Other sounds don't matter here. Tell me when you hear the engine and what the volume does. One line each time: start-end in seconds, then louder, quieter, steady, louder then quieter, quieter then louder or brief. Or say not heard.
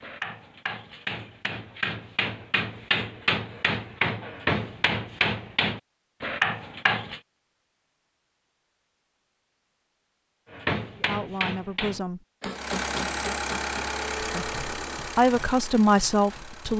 12.5-16.7 quieter.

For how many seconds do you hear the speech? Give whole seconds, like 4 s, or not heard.
4 s.